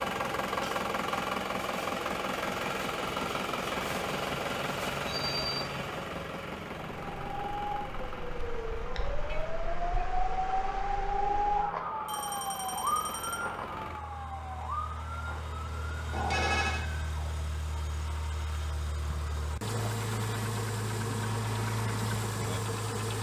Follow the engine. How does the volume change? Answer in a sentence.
The loudness of the engine goes down, then up.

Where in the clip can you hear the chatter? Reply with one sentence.
You can't hear the chatter here.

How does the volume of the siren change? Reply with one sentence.
The volume of the siren goes up, then down.